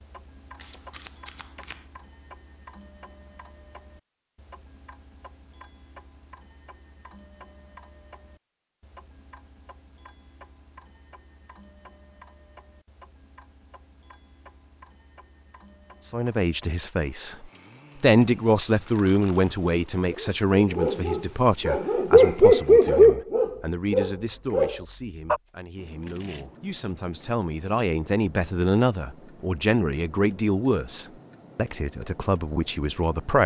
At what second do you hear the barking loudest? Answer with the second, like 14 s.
23 s.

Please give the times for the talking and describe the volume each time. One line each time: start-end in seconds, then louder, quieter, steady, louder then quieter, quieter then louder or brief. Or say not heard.
16.1-33.4 quieter then louder.